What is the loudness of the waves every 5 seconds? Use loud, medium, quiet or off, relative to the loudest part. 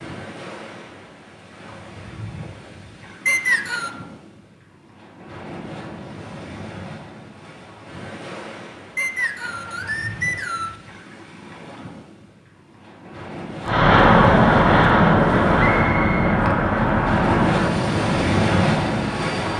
quiet, quiet, quiet, loud.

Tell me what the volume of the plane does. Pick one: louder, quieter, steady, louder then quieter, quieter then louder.
quieter.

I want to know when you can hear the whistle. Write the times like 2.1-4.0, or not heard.
3.2-3.9, 8.9-10.8, 15.8-16.4.